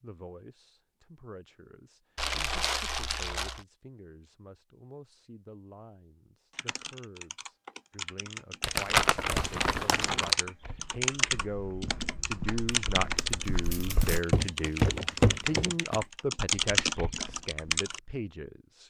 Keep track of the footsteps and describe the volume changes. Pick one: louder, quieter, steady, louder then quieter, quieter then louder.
louder then quieter.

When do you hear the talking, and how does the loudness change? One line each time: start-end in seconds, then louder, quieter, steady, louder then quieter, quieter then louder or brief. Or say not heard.
0.0-18.8 louder.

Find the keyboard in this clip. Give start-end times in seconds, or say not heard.
6.5-18.0.